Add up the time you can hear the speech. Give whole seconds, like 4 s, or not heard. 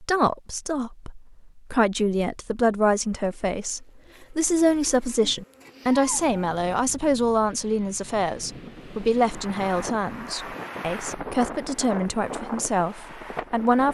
14 s.